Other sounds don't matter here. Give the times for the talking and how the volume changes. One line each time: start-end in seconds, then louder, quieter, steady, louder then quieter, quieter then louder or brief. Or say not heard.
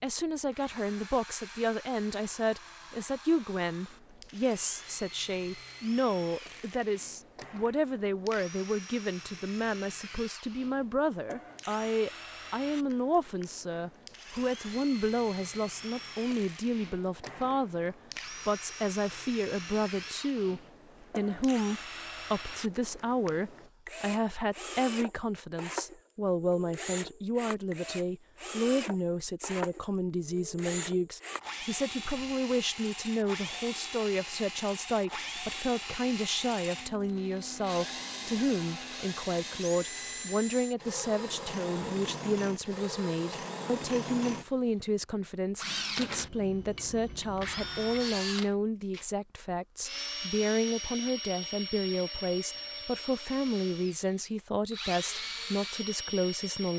0.0-56.7 steady.